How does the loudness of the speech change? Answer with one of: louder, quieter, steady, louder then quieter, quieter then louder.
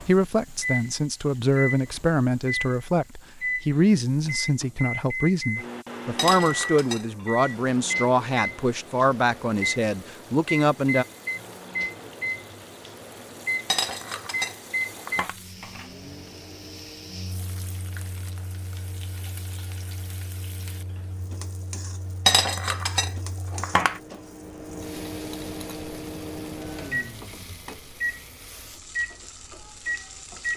steady.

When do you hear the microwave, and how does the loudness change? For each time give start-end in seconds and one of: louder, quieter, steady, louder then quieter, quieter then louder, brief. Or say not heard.
0.0-30.5 quieter then louder.